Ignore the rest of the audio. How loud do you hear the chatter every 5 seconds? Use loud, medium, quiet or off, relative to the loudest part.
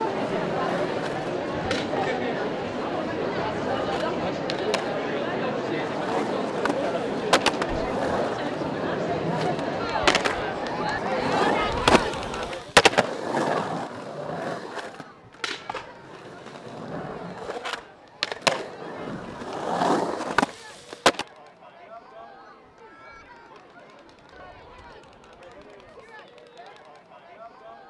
loud, loud, loud, quiet, quiet, quiet.